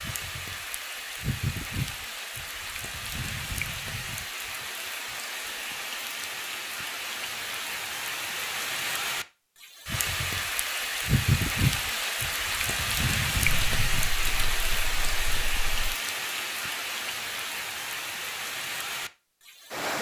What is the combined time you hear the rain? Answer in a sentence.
The rain can be heard for 20 seconds in total.